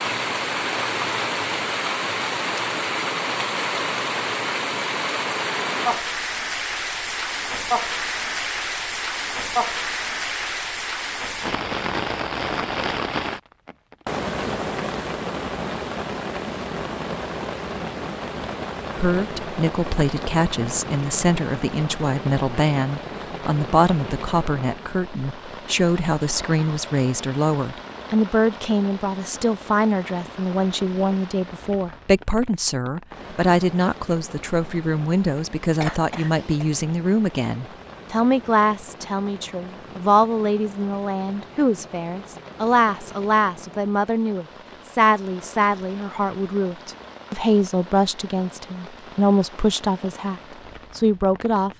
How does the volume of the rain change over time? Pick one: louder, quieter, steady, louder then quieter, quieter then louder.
quieter.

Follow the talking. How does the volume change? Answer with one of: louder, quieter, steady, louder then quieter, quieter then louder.
steady.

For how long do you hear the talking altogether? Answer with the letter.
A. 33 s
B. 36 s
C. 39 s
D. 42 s
A.